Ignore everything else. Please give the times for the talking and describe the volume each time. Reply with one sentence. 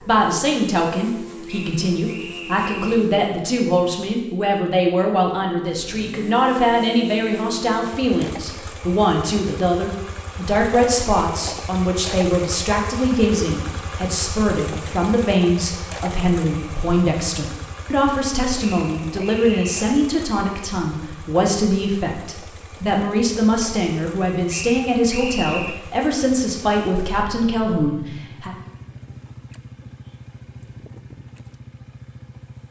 The talking can be heard from 0.0 to 28.6 s, at a steady volume.